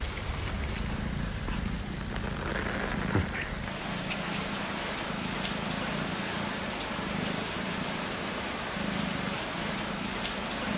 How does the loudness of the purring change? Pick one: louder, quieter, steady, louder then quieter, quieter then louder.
steady.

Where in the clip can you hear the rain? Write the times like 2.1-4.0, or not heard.
0.0-10.7.